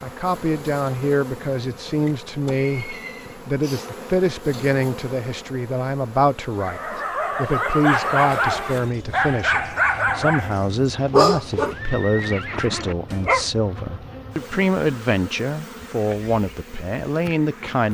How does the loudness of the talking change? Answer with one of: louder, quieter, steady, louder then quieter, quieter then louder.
steady.